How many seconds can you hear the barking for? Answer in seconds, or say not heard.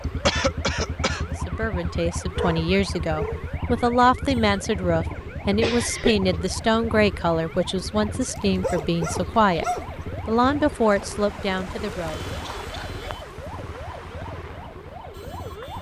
3 s.